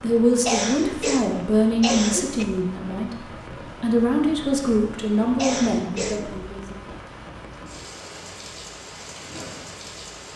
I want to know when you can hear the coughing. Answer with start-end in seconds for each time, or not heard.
0.5-2.5, 5.3-6.3.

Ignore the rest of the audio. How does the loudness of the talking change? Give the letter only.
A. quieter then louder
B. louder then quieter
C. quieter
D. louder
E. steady
E.